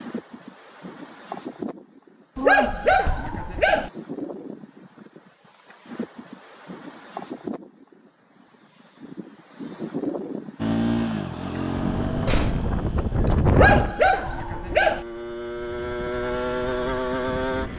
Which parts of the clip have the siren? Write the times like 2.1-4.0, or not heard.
not heard.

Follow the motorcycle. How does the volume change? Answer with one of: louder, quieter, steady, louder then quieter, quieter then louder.
quieter then louder.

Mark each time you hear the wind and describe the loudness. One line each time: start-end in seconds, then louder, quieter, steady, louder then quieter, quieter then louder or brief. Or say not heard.
0.0-13.9 louder.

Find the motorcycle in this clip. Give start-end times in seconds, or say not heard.
10.6-17.7.